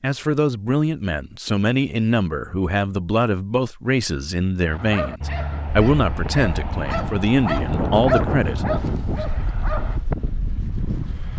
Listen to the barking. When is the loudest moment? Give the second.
8 s.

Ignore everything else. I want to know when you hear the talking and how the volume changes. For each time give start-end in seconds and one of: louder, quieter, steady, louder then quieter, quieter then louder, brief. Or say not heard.
0.0-8.7 steady.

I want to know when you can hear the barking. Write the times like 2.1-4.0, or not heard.
4.7-10.1.